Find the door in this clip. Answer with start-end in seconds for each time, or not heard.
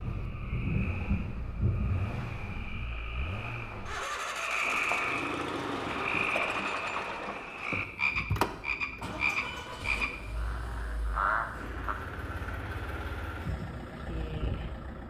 not heard.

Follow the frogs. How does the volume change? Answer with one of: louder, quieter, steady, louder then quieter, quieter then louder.
louder.